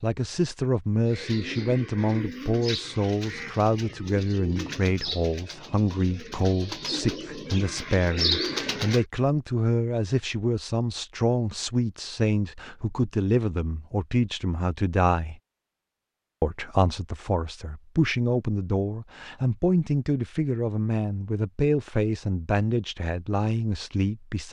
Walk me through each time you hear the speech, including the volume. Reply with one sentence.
The speech can be heard from 0.0 to 15.4 s, at a steady volume; and from 16.4 to 24.4 s, at a steady volume.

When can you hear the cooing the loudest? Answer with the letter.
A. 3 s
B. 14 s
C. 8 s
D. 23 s
C.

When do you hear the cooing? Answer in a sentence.
The cooing can be heard from 1.1 to 9.1 s.